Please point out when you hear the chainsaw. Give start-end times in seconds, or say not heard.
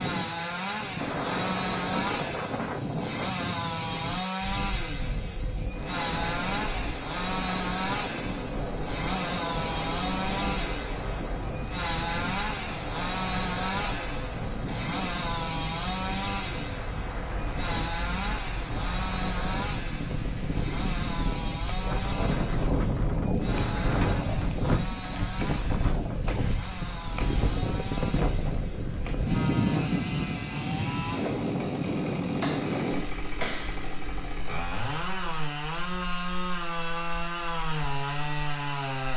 0.0-39.1.